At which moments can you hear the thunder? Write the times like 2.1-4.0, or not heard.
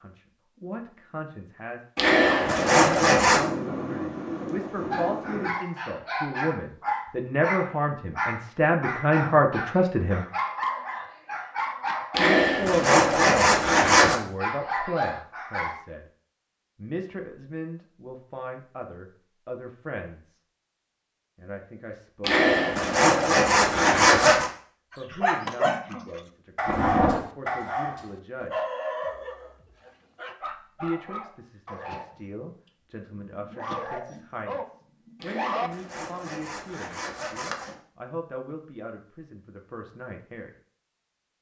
2.2-5.5, 26.6-27.2.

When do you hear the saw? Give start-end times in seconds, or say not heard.
1.9-3.4, 12.1-14.2, 22.2-24.5, 35.2-37.8.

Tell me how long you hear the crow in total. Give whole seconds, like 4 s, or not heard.
not heard.